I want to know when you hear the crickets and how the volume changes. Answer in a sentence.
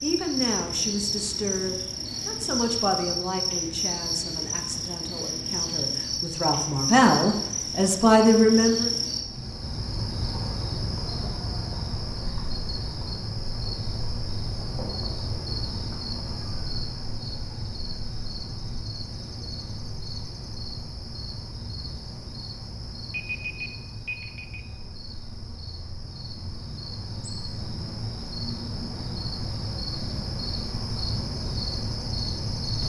You can hear the crickets from 0.0 to 32.8 s, getting quieter then louder.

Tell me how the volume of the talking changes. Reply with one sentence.
The loudness of the talking goes down, then up.